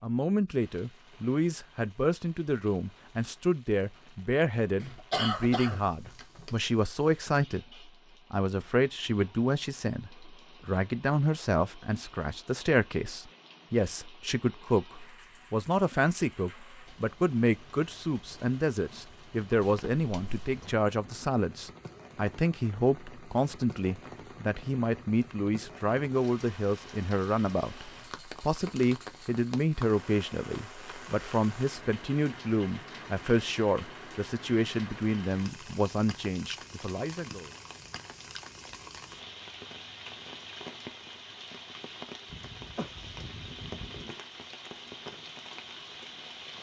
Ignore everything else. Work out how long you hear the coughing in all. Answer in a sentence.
You can hear the coughing for 5 seconds altogether.